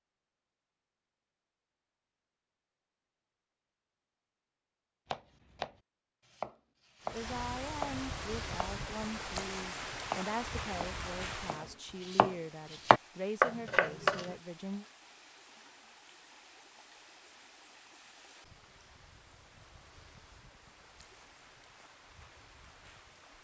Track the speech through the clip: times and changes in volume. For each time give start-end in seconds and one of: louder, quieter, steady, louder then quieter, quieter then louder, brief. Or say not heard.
7.1-14.8 steady.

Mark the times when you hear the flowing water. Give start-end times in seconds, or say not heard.
7.0-23.4.